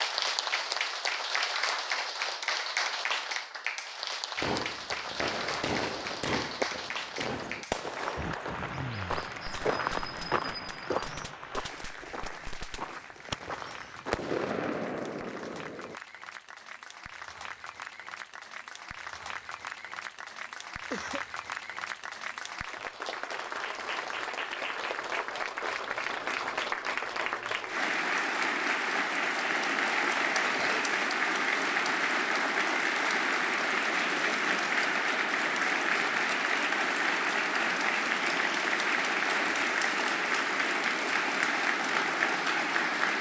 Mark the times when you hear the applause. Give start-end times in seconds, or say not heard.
0.0-43.1.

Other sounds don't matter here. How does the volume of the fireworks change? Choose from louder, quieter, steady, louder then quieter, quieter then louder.
quieter then louder.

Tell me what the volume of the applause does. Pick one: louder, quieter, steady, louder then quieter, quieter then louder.
quieter then louder.